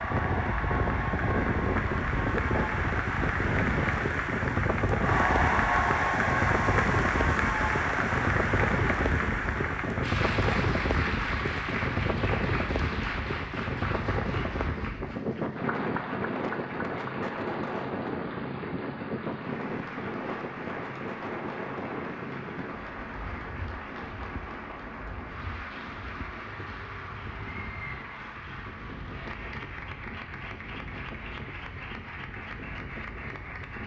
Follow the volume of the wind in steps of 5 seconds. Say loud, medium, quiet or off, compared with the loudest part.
loud, loud, loud, loud, medium, quiet, quiet.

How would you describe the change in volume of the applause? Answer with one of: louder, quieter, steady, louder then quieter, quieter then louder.
quieter.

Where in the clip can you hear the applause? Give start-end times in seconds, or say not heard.
0.0-33.8.